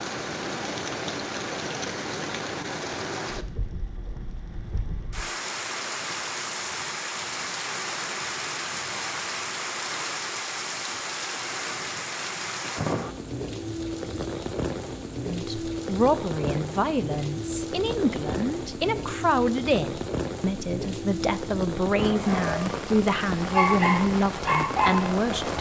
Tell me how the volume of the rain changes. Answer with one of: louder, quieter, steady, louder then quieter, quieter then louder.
steady.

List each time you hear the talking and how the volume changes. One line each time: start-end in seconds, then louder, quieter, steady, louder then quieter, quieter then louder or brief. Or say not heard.
15.2-25.5 steady.